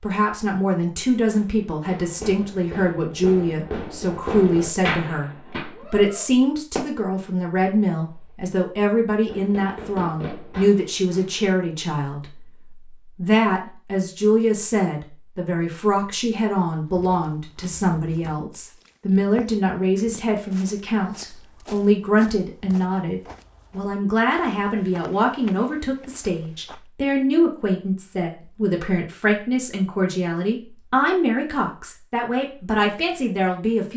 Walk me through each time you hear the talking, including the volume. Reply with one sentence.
You can hear the talking from 0.0 to 33.9 s, at a steady volume.